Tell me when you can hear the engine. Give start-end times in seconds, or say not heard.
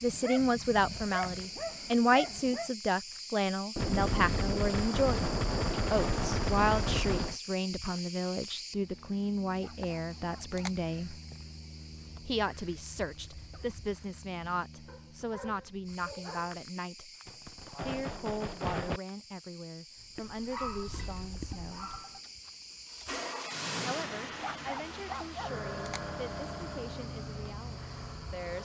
19.9-28.6.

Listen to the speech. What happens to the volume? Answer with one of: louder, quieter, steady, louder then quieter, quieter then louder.
quieter.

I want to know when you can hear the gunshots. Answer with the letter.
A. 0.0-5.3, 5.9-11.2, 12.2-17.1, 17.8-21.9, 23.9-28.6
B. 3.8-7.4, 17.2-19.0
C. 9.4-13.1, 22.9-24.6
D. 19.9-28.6
B.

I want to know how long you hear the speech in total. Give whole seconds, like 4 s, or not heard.
24 s.